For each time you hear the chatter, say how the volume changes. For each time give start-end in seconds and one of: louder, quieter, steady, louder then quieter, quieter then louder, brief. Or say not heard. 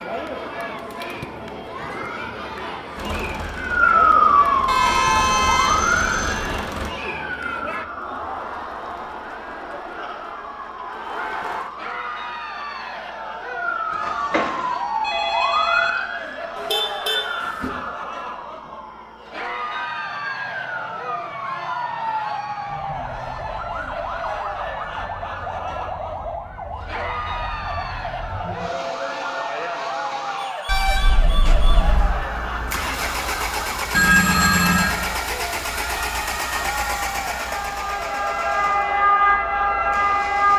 0.0-40.5 steady.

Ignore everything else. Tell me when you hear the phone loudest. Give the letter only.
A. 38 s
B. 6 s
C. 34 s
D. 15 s
C.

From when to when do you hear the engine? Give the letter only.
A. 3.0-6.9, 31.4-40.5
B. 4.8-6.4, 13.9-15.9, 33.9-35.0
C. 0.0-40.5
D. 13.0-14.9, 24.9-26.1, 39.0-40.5
A.